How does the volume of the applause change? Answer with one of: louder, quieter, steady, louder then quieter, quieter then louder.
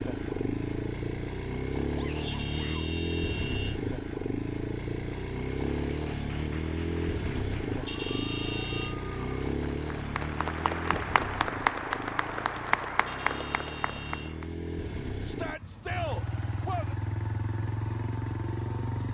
louder.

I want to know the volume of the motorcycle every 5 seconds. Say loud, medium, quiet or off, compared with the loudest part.
loud, loud, medium, loud.